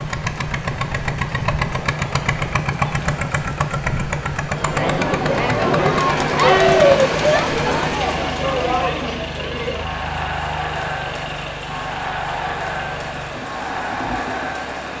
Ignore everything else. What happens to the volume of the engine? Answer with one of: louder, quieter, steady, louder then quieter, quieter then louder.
quieter.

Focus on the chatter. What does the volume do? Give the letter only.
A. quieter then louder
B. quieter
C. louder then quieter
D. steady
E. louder
B.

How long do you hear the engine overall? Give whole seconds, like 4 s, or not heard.
15 s.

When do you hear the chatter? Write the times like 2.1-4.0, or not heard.
4.5-14.9.